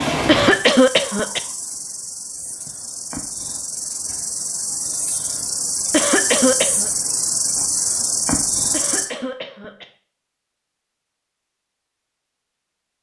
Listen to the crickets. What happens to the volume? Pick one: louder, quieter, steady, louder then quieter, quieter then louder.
louder.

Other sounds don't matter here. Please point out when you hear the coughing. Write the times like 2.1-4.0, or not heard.
0.2-1.4, 5.9-6.9, 8.7-9.8.